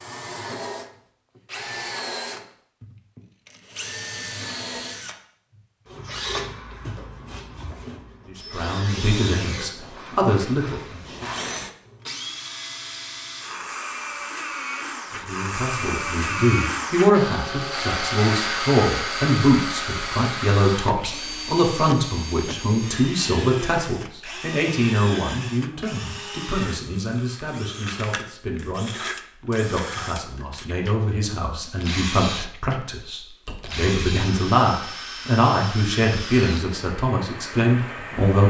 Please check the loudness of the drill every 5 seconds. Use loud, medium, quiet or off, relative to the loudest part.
medium, medium, medium, loud, medium, medium, medium, medium.